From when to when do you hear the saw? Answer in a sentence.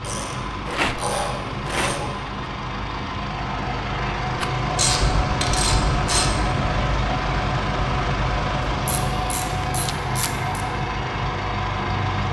You can't hear the saw here.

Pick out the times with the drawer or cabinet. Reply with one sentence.
You can't hear the drawer or cabinet here.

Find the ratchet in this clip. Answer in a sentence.
The ratchet can be heard from 0.0 to 2.1 s, from 4.8 to 6.3 s and from 8.8 to 10.7 s.